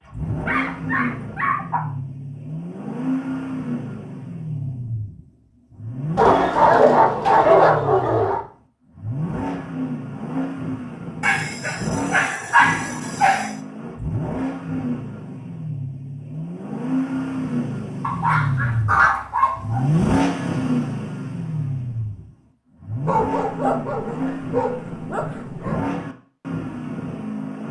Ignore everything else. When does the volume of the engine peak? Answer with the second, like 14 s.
20 s.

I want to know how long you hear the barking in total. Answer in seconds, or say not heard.
11 s.